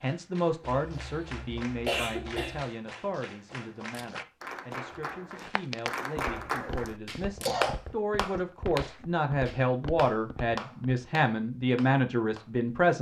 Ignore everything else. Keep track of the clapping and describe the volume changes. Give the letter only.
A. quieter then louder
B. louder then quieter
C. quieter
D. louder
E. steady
B.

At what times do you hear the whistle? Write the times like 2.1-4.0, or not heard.
not heard.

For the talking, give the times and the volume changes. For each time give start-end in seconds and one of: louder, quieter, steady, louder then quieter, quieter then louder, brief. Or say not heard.
0.0-12.9 quieter then louder.